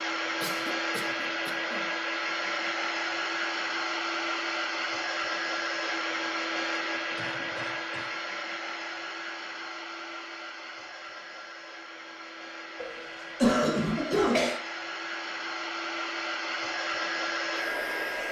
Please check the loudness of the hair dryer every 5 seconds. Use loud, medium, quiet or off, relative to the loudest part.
loud, loud, medium, loud.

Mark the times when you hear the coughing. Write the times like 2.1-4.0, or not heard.
0.4-1.9, 7.2-8.1, 12.8-14.6.